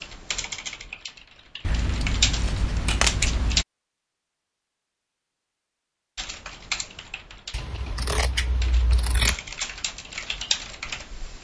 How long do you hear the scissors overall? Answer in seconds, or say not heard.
4 s.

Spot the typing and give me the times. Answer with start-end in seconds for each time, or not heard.
0.0-3.6, 6.2-11.4.